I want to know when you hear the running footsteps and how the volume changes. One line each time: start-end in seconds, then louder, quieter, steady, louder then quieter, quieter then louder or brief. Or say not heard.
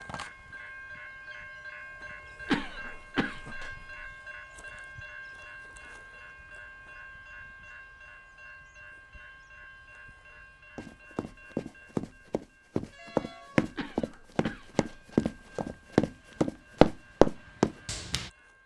10.8-18.3 louder.